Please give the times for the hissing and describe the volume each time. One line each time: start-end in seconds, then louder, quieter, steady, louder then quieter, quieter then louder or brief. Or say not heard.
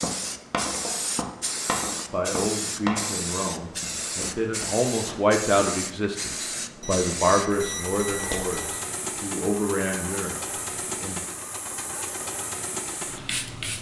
0.0-13.7 steady.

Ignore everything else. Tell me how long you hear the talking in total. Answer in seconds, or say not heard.
9 s.